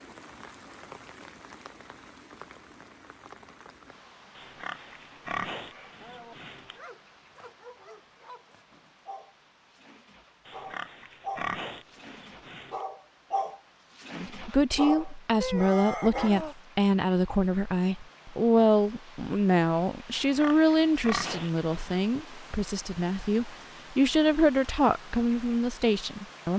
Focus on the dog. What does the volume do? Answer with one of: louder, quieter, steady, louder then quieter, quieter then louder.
louder.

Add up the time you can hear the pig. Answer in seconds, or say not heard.
7 s.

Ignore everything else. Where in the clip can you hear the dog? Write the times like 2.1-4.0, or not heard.
5.7-16.6.